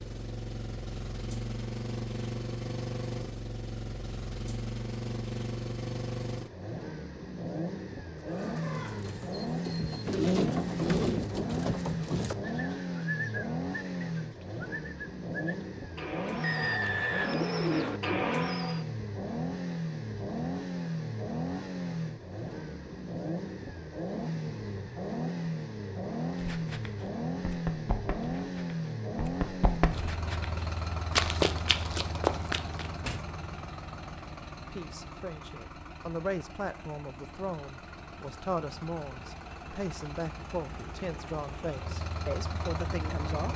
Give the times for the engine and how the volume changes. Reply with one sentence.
The engine can be heard from 0.0 to 43.5 s, getting quieter.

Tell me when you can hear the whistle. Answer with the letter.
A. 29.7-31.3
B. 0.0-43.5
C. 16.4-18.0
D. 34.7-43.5
C.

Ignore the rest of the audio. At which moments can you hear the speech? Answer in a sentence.
The speech can be heard from 34.7 to 43.5 s.